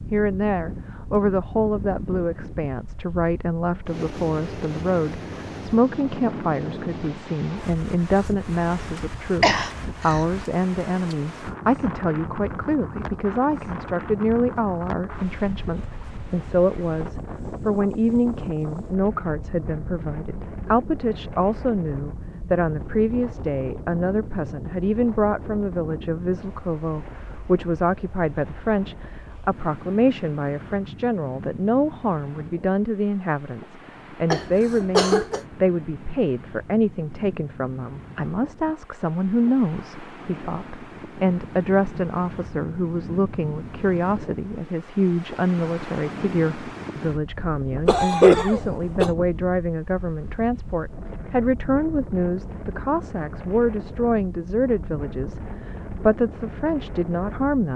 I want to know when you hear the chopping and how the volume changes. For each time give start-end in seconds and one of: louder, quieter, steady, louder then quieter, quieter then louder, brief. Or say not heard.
not heard.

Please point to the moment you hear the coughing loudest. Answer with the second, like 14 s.
48 s.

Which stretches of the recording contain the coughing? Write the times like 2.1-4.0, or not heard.
9.4-10.2, 34.3-35.4, 47.9-49.1.